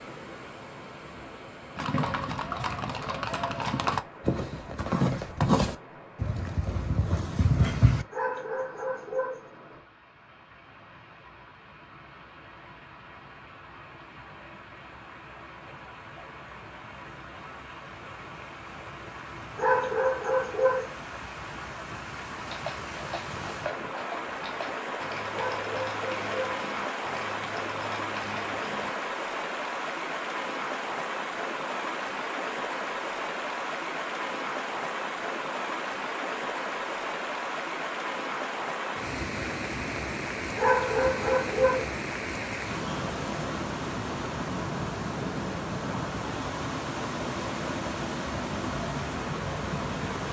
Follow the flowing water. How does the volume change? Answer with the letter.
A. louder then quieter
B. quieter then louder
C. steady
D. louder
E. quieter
D.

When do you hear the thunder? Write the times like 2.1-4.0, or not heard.
not heard.